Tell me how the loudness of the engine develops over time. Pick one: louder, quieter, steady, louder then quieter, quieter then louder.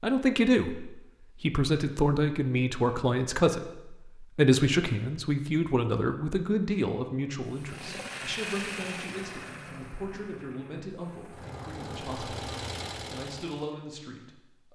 quieter then louder.